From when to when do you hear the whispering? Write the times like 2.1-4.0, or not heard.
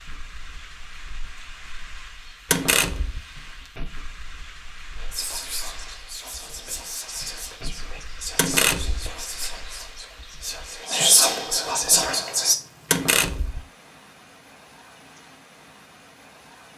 5.0-12.6.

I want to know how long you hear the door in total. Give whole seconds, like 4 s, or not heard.
2 s.